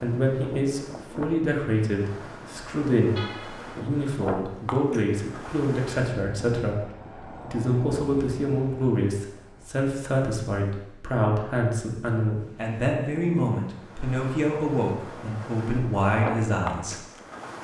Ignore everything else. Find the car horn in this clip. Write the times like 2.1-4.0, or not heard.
3.1-3.8.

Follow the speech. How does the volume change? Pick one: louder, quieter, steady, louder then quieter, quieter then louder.
steady.